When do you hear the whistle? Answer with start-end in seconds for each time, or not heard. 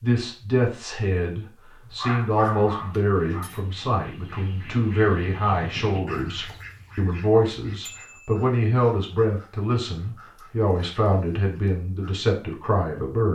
not heard.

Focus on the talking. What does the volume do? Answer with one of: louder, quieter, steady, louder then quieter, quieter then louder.
steady.